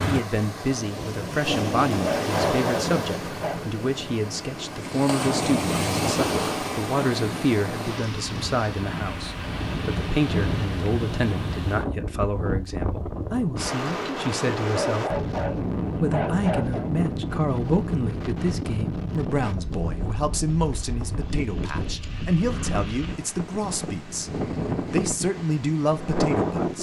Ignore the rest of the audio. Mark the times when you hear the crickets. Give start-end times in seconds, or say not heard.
not heard.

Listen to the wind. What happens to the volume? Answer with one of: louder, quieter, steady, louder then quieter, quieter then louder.
steady.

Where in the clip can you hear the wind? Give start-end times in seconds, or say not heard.
0.0-26.7.